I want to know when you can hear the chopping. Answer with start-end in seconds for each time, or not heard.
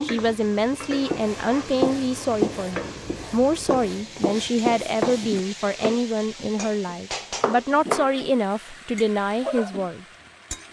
1.1-8.1.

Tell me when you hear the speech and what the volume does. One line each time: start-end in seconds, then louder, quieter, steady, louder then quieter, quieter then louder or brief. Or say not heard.
0.0-10.1 steady.